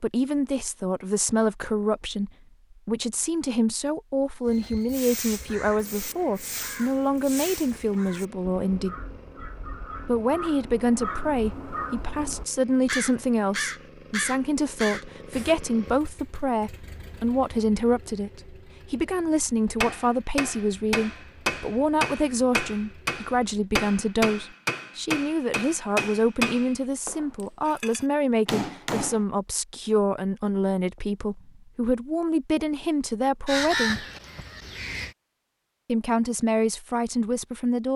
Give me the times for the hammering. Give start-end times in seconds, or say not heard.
19.8-29.2.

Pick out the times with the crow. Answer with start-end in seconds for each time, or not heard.
4.5-15.6, 33.5-35.1.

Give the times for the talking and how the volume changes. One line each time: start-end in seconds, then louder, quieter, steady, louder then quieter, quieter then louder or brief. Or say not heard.
0.0-8.9 steady
10.1-34.0 steady
35.9-37.9 brief.